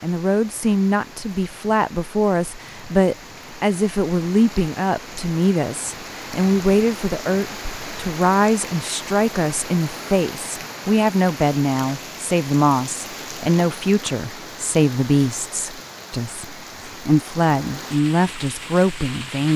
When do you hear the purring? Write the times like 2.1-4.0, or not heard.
not heard.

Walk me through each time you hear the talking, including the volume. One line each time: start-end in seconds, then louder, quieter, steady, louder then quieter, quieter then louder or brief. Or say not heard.
0.0-19.5 steady.